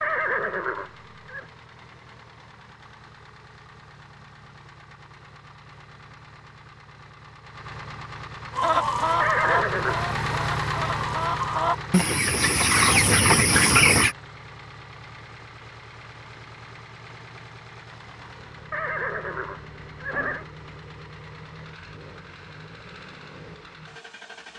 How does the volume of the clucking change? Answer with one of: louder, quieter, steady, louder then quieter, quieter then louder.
quieter then louder.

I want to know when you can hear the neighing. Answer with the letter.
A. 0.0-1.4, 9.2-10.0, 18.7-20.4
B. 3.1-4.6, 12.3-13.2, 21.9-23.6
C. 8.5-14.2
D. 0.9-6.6
A.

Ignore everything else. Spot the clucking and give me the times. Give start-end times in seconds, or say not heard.
8.5-14.2.